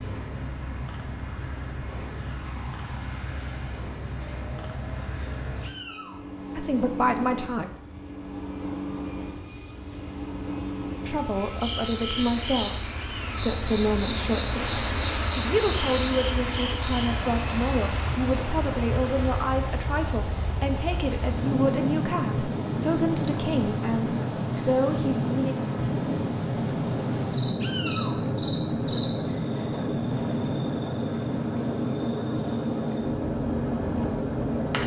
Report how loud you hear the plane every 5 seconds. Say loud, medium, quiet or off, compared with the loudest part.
quiet, quiet, medium, medium, loud, loud, loud.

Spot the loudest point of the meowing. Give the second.
28 s.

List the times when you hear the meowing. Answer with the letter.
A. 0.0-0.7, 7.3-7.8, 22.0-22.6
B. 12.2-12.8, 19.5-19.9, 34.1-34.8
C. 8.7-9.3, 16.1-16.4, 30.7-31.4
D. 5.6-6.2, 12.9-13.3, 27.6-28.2
D.